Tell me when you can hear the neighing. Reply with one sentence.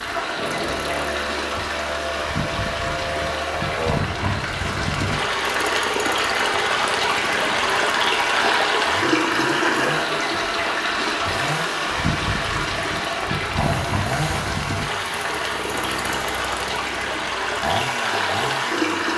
You can't hear the neighing here.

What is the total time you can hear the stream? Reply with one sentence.
You can hear the stream for 19 seconds altogether.